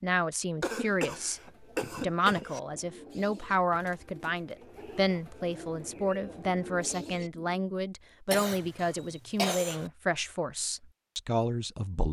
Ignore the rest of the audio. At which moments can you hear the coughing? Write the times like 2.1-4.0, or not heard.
0.6-2.6, 8.3-9.9.